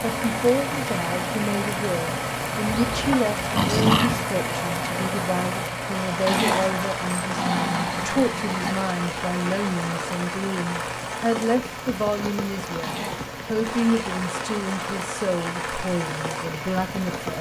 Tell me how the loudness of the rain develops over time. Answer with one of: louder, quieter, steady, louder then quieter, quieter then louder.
steady.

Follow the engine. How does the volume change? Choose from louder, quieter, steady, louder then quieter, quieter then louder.
quieter.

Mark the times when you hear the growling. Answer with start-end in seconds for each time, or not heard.
2.6-4.2, 6.2-8.8, 12.8-13.4.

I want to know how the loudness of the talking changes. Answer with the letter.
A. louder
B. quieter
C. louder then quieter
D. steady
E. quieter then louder
D.